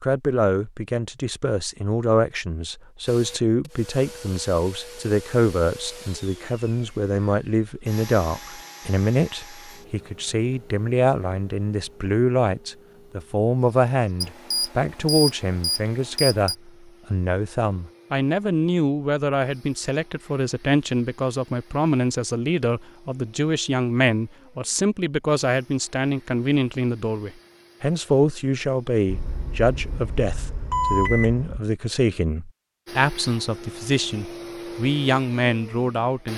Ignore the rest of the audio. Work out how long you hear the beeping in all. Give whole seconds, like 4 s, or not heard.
5 s.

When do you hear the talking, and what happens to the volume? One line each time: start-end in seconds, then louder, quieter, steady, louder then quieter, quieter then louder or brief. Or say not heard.
0.0-36.3 steady.